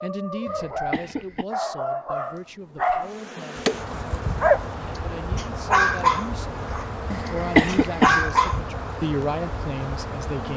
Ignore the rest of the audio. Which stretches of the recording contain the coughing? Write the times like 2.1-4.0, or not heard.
0.5-1.4, 7.1-8.2.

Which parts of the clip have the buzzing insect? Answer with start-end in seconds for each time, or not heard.
3.0-10.5.